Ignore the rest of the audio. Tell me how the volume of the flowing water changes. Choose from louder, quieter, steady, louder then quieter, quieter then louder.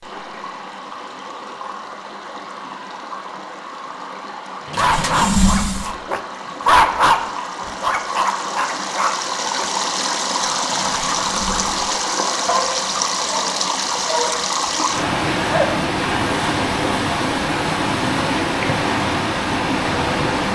louder.